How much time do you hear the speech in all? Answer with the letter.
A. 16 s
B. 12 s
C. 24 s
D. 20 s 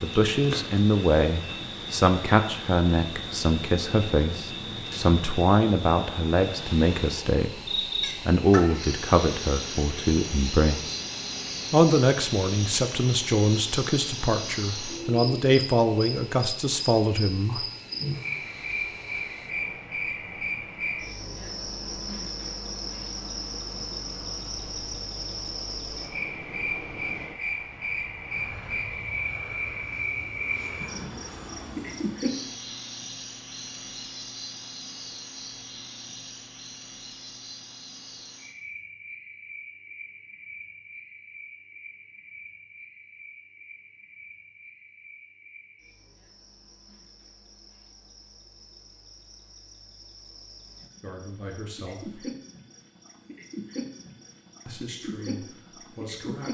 D.